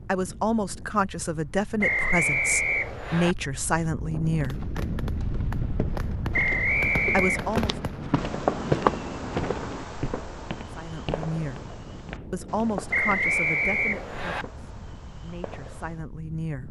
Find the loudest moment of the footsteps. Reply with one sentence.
The loudest moment of the footsteps is at 9 seconds.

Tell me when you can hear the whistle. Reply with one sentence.
The whistle can be heard from 1.8 to 3.4 s, from 6.3 to 7.6 s and from 12.9 to 14.4 s.